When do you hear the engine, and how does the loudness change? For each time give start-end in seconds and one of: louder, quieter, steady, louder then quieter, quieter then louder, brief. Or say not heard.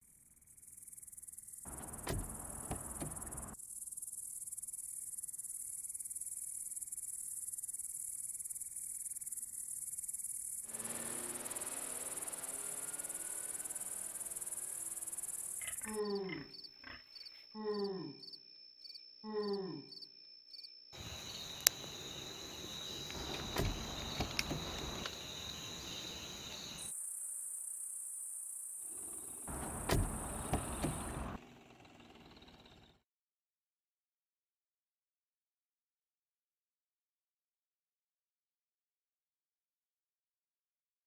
10.6-15.8 quieter
28.8-33.0 louder then quieter.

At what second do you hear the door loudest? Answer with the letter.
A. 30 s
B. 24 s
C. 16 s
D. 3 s
A.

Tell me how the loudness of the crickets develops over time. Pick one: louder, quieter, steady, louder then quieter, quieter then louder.
louder then quieter.